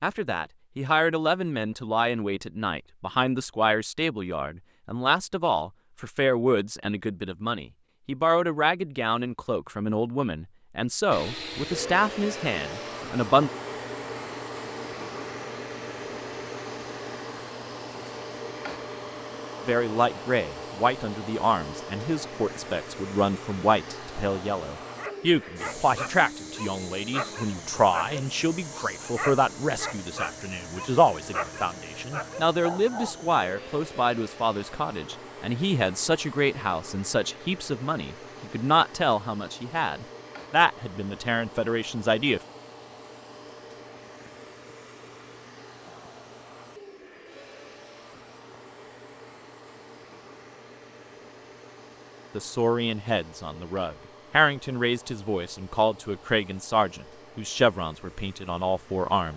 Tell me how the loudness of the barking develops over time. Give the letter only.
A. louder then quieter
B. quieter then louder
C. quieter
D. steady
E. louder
D.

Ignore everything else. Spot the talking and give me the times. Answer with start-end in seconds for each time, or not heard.
0.0-13.5, 19.6-42.4, 52.4-59.3.